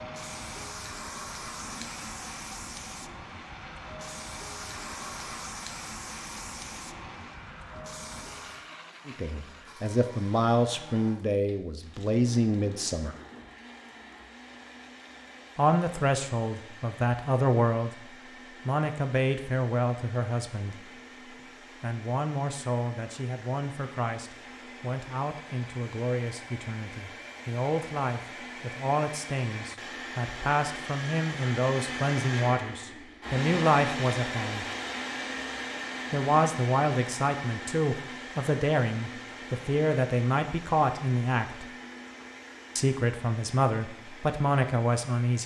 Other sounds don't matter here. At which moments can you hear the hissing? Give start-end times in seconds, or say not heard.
0.0-8.7.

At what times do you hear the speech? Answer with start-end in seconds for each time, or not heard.
9.1-13.2, 15.6-21.0, 21.8-34.6, 36.1-41.7, 42.8-45.4.